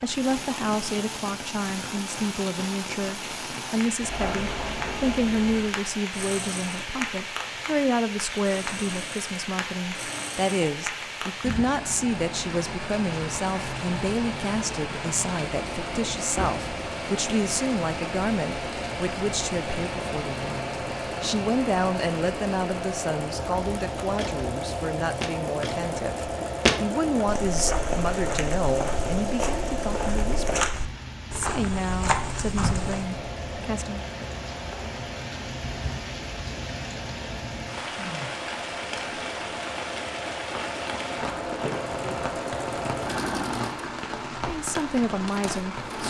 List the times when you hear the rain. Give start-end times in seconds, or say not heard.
0.0-46.0.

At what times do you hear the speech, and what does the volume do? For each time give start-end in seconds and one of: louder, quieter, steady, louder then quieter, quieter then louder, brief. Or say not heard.
0.0-30.6 steady
31.4-34.0 brief
44.5-46.0 brief.